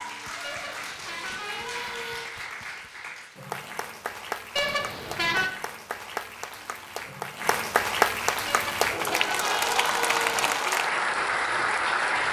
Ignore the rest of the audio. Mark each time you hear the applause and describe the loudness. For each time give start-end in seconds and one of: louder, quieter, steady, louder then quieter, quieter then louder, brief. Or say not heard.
0.0-12.2 louder.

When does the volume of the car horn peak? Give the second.
5 s.